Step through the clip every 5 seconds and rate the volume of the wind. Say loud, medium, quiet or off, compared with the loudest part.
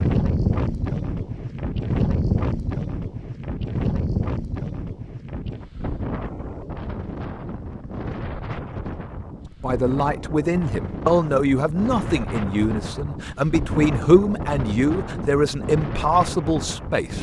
loud, medium, medium, medium.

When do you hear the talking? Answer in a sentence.
You can hear the talking from 9.6 to 17.1 s.